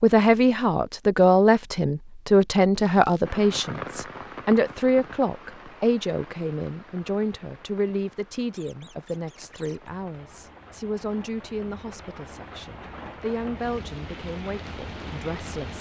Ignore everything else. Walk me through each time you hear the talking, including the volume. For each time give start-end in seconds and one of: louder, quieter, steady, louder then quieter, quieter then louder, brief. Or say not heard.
0.0-15.7 quieter.